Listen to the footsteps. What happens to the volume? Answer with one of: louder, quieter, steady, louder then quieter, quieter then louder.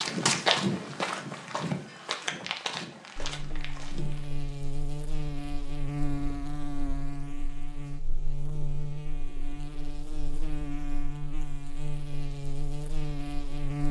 quieter.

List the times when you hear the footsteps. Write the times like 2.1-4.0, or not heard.
0.0-4.3.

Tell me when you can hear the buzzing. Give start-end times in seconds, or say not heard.
3.1-13.8.